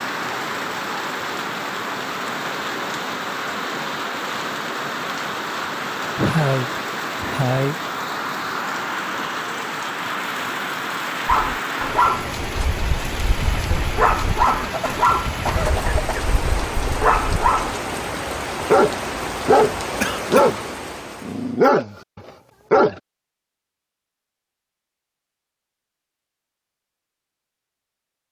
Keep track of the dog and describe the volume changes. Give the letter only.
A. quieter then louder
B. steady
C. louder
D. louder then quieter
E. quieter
A.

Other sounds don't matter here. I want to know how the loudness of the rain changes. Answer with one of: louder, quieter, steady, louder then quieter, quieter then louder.
steady.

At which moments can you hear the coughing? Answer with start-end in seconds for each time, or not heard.
6.2-7.8, 14.4-16.2, 20.0-20.5.